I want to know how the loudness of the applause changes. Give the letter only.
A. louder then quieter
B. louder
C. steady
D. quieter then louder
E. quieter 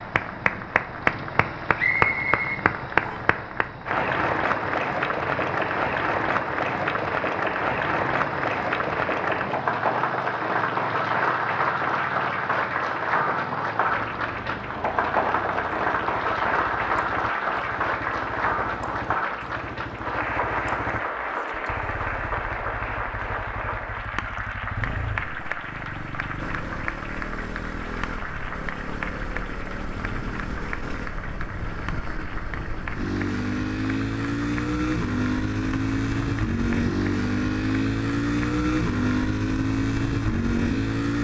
E.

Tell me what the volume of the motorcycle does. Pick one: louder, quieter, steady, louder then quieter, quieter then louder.
louder.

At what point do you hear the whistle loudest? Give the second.
2 s.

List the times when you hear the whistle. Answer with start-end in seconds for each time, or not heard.
1.8-3.2.